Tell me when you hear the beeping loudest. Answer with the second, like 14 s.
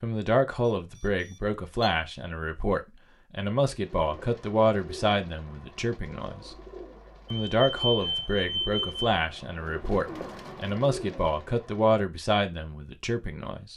8 s.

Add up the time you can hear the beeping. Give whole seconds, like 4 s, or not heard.
3 s.